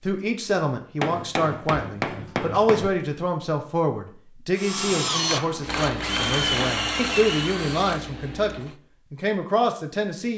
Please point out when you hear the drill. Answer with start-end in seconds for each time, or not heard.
4.5-8.8.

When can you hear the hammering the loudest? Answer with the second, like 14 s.
2 s.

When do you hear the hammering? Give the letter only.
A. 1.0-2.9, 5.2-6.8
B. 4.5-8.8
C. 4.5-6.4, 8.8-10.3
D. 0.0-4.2
A.